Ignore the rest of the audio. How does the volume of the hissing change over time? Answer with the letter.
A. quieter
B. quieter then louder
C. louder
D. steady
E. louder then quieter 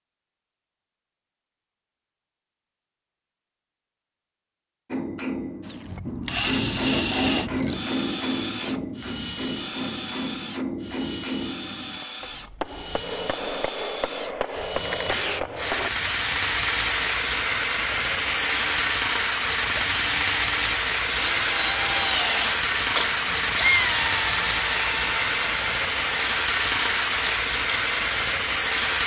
D.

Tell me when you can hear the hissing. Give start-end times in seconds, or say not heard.
14.8-29.0.